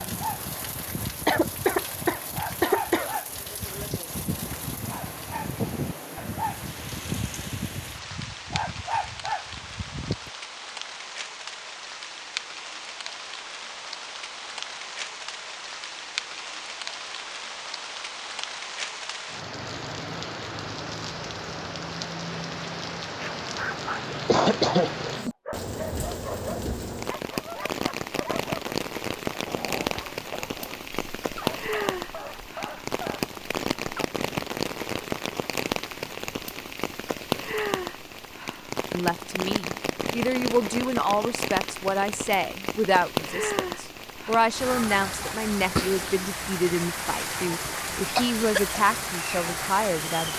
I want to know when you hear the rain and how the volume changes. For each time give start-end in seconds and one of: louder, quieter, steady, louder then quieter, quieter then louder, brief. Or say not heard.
0.0-50.3 louder.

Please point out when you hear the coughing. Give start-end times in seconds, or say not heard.
1.2-3.1, 24.1-24.9, 47.5-48.8.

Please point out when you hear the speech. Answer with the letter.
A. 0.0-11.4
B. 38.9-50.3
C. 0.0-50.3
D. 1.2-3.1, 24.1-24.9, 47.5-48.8
B.